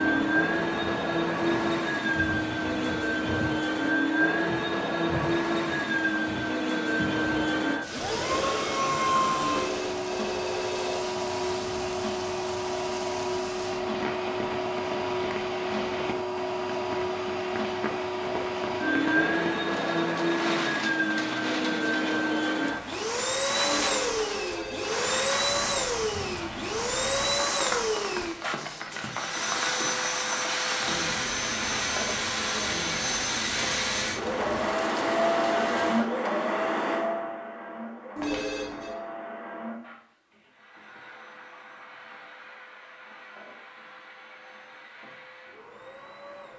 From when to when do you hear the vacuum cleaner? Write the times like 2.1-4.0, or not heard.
0.0-46.5.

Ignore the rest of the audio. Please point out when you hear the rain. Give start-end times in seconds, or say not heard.
0.0-36.1.